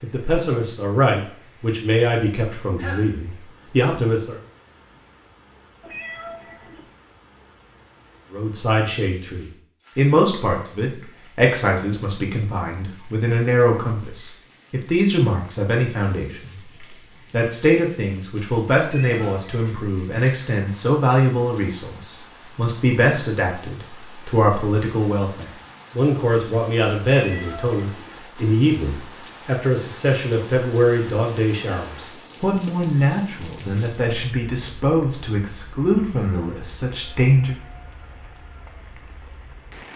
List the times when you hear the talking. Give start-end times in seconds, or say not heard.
0.0-4.3, 8.3-16.6, 17.3-37.6.